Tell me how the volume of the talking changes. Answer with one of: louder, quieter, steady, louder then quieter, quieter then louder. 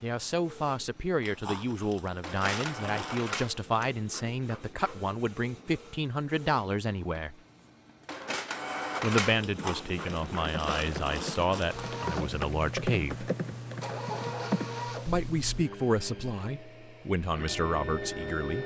steady.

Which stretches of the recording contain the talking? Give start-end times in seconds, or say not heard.
0.0-7.3, 9.0-13.3, 15.1-18.6.